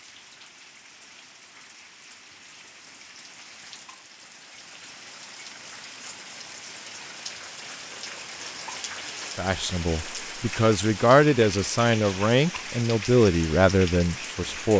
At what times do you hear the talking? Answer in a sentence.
The talking can be heard from 9.3 to 14.7 s.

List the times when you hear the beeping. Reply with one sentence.
The beeping can't be heard in this clip.